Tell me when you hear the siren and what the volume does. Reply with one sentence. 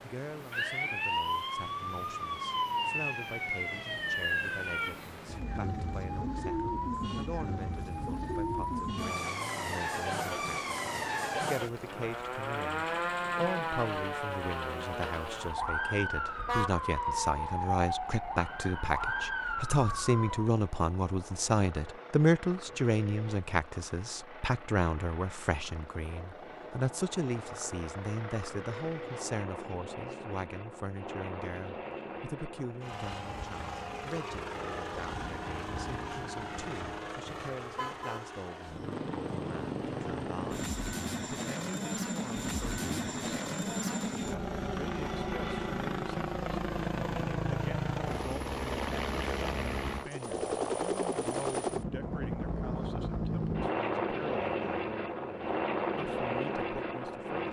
You can hear the siren from 0.0 to 20.5 s, at a steady volume.